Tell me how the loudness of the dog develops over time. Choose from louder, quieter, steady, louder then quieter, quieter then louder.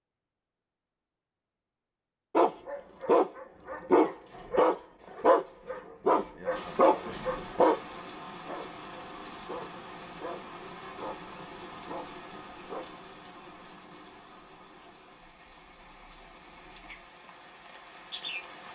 quieter.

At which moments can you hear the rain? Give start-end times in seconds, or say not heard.
6.5-18.7.